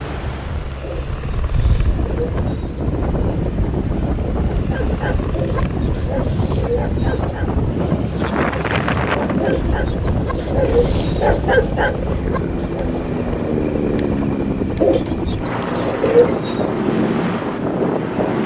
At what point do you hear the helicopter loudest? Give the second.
14 s.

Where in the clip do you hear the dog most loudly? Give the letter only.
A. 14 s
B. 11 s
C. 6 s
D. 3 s
B.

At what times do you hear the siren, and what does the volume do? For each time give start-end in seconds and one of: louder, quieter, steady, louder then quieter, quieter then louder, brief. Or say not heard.
not heard.